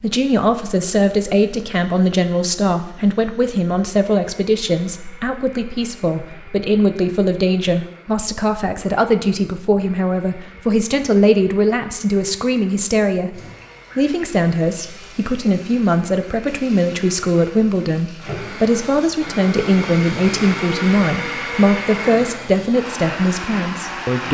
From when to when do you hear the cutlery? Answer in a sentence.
You can't hear the cutlery here.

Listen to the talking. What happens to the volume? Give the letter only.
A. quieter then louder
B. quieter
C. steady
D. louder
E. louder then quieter
C.